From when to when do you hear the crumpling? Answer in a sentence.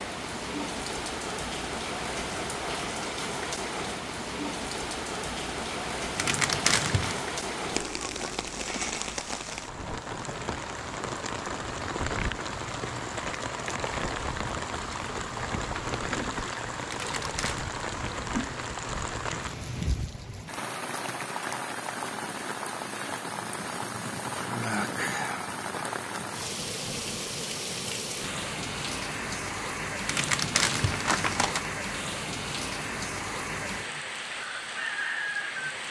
The crumpling can be heard from 6.2 to 7.2 s, from 16.9 to 17.7 s and from 30.1 to 31.7 s.